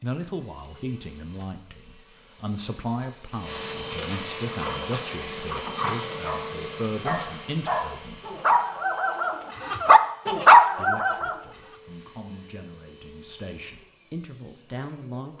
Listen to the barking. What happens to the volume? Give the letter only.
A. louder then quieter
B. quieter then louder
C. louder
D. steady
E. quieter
C.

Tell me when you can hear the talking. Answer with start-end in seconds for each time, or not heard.
0.0-8.2, 10.6-15.3.